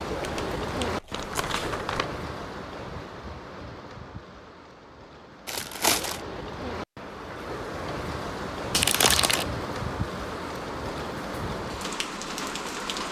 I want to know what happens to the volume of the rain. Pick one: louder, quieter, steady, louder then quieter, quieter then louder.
quieter then louder.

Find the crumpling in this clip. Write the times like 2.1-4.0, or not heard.
0.2-2.0, 5.5-6.2, 8.7-9.4.